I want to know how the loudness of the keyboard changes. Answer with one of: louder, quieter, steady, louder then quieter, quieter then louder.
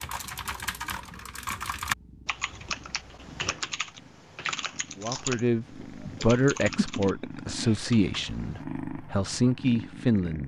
quieter.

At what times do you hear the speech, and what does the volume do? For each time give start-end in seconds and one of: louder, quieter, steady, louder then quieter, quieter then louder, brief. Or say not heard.
5.0-10.4 quieter then louder.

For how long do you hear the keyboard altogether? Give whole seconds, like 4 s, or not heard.
9 s.